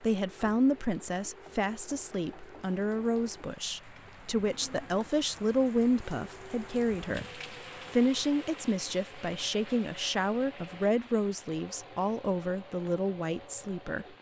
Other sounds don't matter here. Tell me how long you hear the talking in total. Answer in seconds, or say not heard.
14 s.